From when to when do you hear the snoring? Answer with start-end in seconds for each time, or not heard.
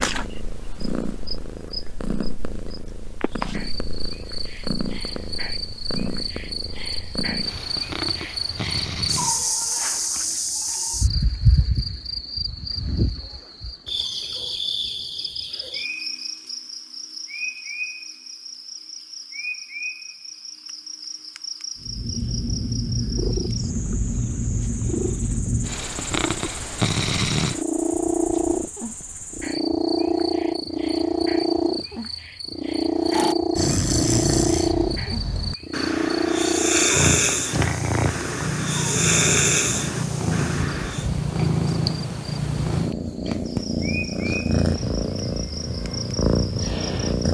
33.0-41.1.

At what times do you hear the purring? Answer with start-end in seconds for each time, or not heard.
0.0-9.8, 21.8-47.2.